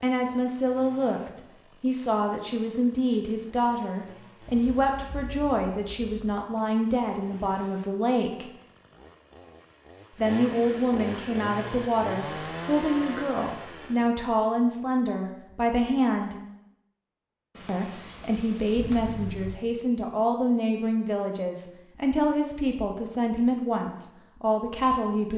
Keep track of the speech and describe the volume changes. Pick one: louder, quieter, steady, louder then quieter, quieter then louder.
steady.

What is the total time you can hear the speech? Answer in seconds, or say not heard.
22 s.